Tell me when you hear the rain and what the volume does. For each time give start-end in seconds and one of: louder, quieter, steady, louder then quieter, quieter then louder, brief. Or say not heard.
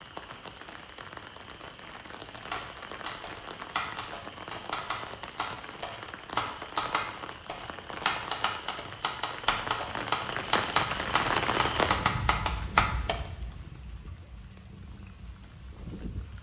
0.0-16.3 louder then quieter.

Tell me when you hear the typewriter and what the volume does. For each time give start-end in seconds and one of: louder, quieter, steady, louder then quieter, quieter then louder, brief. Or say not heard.
2.3-13.2 louder.